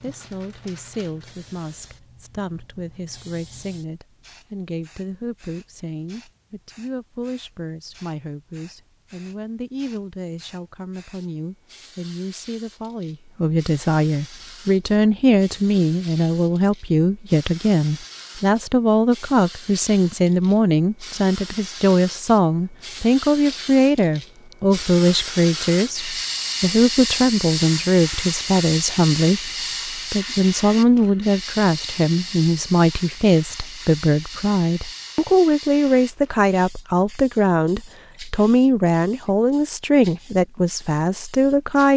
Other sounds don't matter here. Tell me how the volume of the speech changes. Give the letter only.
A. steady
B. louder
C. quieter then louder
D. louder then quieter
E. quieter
B.